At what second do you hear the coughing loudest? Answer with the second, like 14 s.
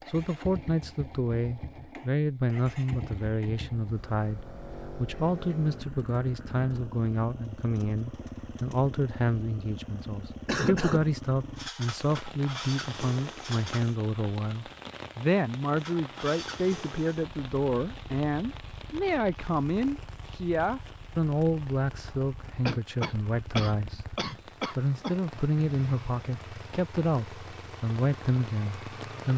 11 s.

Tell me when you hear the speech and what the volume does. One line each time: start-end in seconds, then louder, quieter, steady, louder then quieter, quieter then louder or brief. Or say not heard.
0.1-29.3 steady.